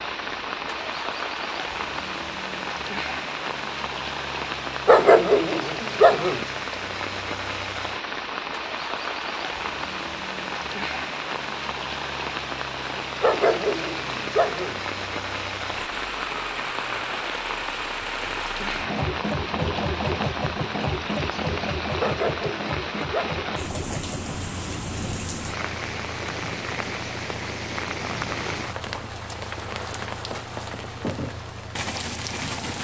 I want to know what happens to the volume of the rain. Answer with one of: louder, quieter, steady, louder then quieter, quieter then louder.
steady.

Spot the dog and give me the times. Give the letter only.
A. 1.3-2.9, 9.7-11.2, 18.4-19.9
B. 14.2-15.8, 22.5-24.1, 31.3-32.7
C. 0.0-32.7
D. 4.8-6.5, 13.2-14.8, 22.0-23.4
D.